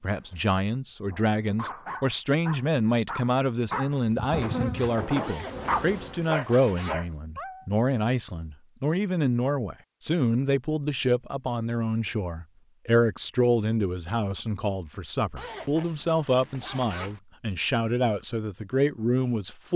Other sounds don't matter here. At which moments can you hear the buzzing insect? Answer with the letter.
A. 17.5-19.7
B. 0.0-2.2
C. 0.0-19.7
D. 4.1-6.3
D.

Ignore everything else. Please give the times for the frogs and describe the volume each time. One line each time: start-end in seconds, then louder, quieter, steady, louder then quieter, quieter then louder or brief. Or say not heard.
not heard.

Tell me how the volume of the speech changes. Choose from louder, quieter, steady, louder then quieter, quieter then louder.
steady.